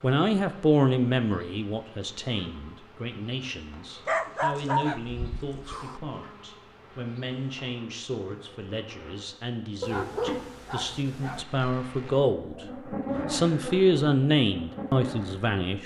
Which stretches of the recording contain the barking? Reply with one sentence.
The barking can be heard from 4.0 to 6.0 s and from 9.8 to 11.4 s.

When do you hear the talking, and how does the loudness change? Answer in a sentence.
You can hear the talking from 0.0 to 12.7 s, getting quieter then louder; and briefly from 13.3 to 15.8 s.